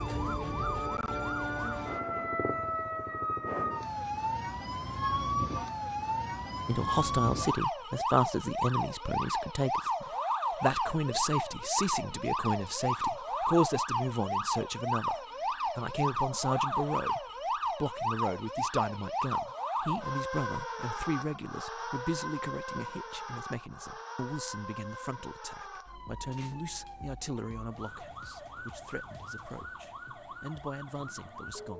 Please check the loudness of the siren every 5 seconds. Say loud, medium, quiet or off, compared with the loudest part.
loud, loud, loud, loud, medium, quiet, quiet.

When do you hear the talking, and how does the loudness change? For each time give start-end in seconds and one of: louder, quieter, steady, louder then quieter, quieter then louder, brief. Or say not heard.
6.7-31.7 quieter.